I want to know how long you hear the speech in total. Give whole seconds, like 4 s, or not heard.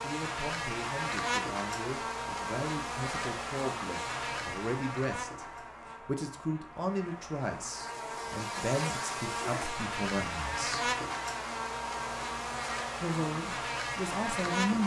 13 s.